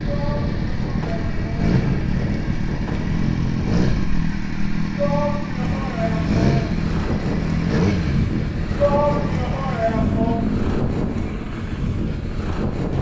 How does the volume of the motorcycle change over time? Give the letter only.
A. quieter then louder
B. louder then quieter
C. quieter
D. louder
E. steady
E.